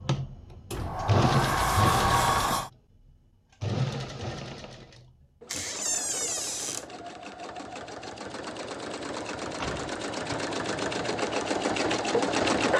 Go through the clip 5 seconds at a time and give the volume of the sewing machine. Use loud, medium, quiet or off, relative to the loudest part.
loud, medium, loud.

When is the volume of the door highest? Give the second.
2 s.